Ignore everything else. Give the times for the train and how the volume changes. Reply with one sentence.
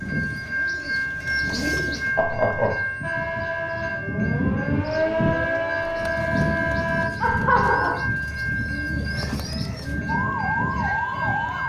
You can hear the train from 0.0 to 11.6 s, at a steady volume.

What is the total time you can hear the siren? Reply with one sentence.
You can hear the siren for 6 seconds altogether.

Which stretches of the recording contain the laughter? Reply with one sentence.
The laughter can be heard from 2.1 to 2.7 s and from 7.2 to 8.0 s.